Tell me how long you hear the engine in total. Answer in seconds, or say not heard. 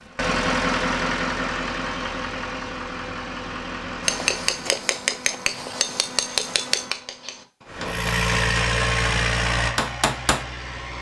8 s.